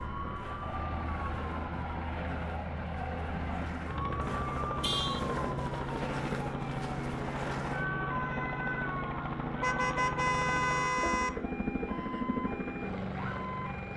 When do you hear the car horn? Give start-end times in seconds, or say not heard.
4.8-5.2, 9.6-11.3.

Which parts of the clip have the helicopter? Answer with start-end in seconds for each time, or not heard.
0.0-13.9.